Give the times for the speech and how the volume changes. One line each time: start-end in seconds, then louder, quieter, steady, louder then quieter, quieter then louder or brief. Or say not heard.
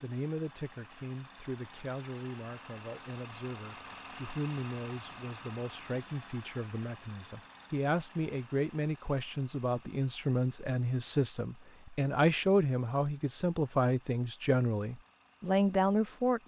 0.0-16.4 louder.